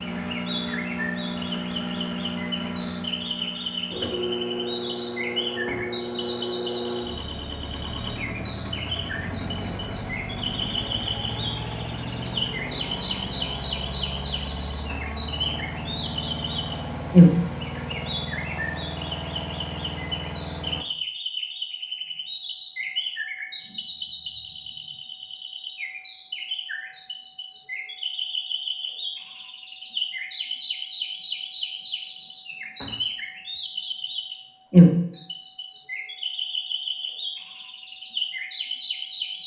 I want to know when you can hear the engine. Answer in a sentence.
You can hear the engine from 0.0 to 20.9 s.